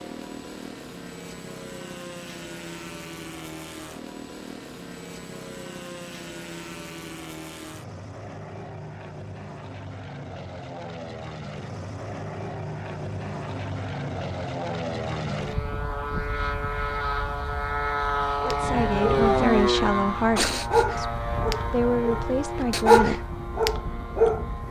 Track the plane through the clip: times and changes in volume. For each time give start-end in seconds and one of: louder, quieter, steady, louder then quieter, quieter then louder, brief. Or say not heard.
0.0-24.6 louder.